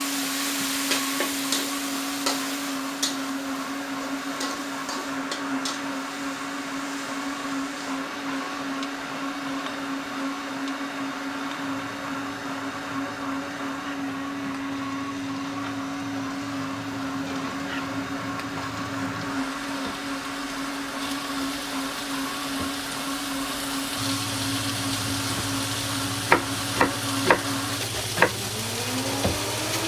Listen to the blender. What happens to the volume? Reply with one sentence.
The loudness of the blender stays about the same.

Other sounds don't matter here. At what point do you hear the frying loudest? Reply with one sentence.
The loudest moment of the frying is at 27 seconds.